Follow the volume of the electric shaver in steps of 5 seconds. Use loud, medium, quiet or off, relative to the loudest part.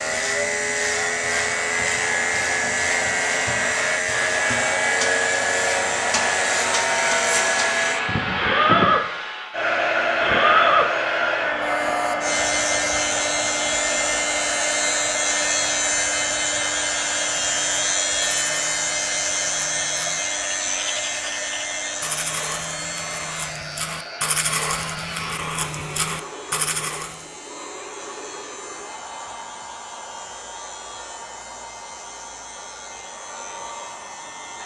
loud, loud, loud, loud, medium, quiet, quiet.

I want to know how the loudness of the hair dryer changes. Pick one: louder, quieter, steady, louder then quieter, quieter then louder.
quieter.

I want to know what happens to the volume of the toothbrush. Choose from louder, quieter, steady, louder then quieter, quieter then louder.
louder.